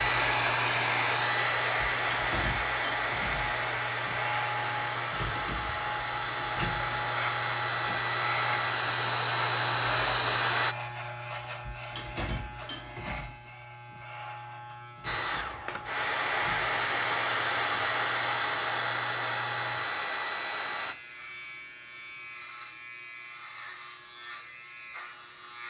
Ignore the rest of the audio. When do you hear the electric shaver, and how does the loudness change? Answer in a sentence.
You can hear the electric shaver from 0.0 to 25.6 s, getting quieter.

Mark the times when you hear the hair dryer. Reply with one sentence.
The hair dryer can be heard from 0.0 to 10.8 s and from 15.1 to 20.9 s.